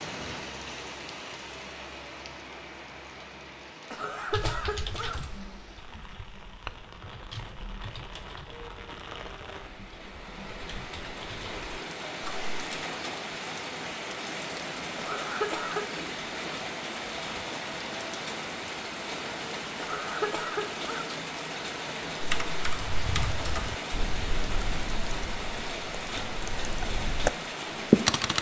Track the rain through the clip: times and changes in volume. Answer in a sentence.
The rain can be heard from 0.0 to 28.3 s, getting louder.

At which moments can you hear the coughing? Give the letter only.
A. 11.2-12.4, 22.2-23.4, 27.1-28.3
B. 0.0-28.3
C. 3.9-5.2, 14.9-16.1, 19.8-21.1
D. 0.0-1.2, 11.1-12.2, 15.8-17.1
C.